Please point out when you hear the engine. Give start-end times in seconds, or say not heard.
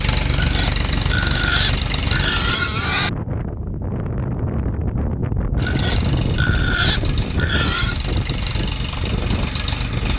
0.0-2.6, 5.5-10.1.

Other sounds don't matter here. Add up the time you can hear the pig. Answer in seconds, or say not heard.
5 s.